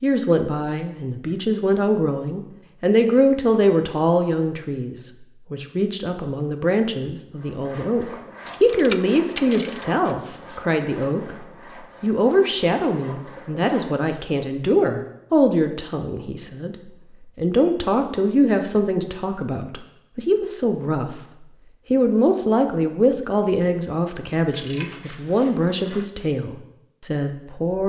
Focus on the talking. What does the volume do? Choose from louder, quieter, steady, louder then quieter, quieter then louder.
steady.